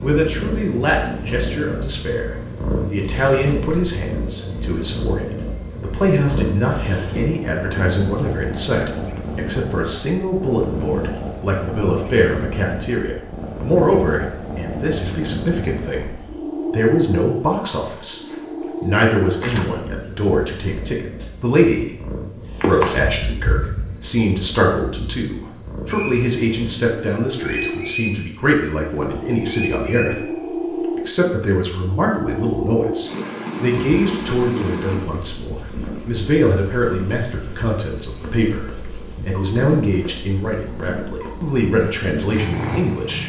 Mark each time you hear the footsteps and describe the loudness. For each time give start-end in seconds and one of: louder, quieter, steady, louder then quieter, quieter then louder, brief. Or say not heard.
not heard.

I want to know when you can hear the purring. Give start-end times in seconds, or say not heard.
0.0-43.2.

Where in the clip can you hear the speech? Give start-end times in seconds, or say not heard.
0.0-18.2, 18.8-43.2.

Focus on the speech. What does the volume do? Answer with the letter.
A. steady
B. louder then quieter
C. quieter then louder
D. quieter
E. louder
A.